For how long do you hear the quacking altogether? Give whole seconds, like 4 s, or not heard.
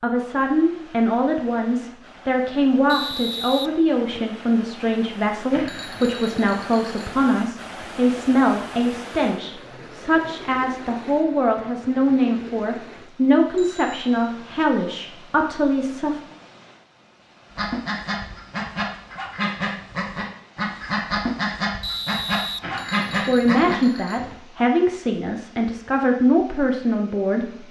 6 s.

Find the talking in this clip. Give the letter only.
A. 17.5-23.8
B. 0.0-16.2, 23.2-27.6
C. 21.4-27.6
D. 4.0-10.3
B.